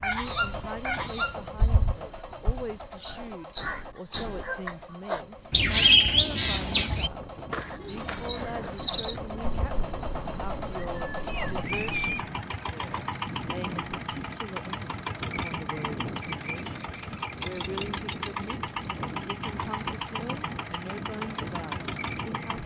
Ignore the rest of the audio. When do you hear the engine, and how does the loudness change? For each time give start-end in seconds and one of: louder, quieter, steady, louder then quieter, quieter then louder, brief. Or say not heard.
0.1-22.6 louder.